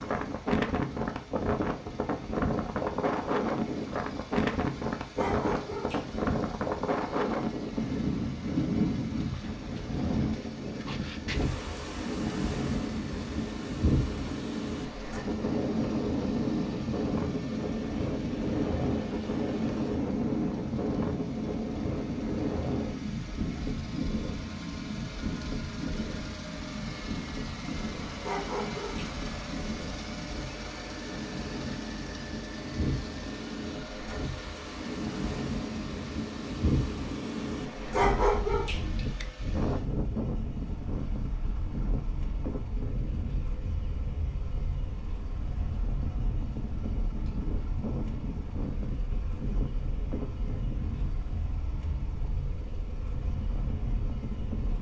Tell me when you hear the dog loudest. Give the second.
38 s.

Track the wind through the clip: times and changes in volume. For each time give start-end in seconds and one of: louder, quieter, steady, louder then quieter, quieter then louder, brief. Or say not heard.
0.0-54.7 quieter.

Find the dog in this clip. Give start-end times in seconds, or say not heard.
5.2-6.2, 28.2-29.1, 37.9-38.9.